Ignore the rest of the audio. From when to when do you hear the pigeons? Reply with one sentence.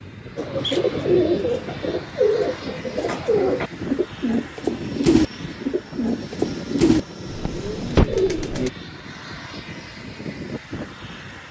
The pigeons can be heard from 0.3 to 8.7 s.